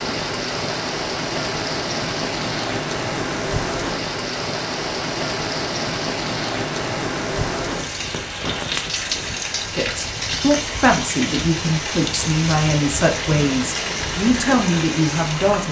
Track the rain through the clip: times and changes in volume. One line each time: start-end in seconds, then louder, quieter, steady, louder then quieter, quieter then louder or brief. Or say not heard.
0.0-15.6 steady.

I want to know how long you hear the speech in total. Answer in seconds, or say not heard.
6 s.